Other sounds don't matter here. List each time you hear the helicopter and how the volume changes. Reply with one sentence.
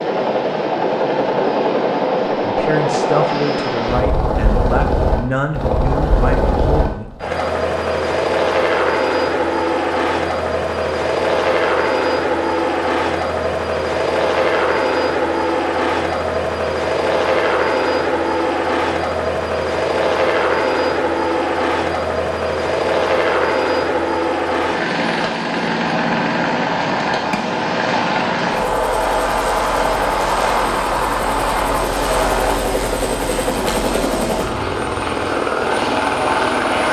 The helicopter can be heard from 0.0 to 36.8 s, at a steady volume.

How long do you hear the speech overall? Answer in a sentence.
The speech can be heard for 5 seconds in total.